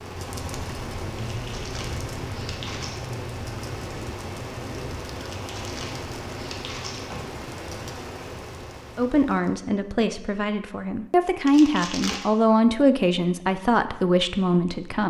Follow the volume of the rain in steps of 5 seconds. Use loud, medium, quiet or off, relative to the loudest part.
loud, loud, off.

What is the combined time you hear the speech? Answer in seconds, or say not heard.
6 s.